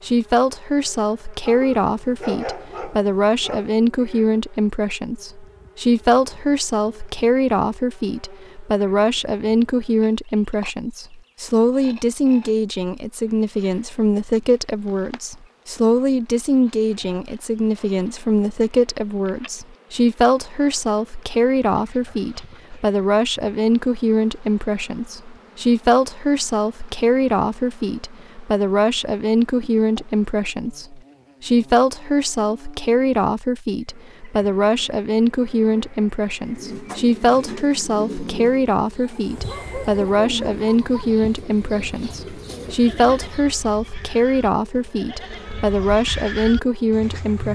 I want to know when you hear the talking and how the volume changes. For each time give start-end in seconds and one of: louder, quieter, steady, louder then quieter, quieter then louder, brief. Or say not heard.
0.0-47.5 steady.